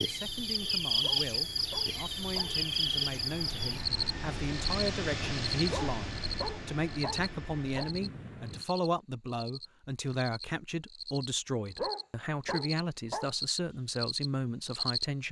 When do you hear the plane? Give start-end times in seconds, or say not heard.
0.0-8.7.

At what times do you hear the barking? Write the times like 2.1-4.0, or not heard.
1.0-2.5, 5.7-8.0, 11.8-13.3.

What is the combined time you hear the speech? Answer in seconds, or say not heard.
15 s.